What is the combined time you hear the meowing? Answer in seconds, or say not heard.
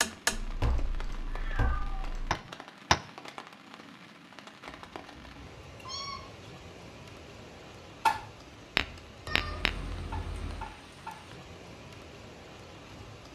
5 s.